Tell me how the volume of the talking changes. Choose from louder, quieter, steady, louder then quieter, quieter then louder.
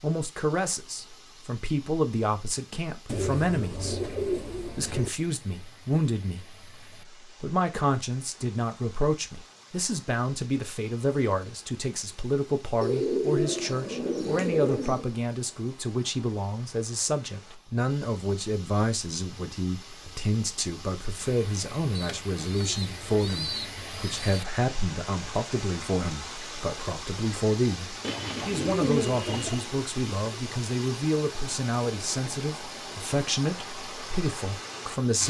steady.